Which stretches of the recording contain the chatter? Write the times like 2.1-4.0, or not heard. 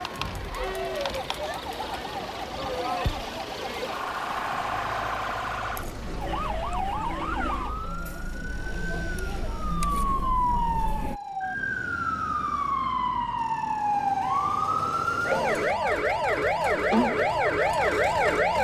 0.0-11.2.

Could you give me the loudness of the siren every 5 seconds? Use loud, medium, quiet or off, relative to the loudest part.
quiet, medium, loud, loud.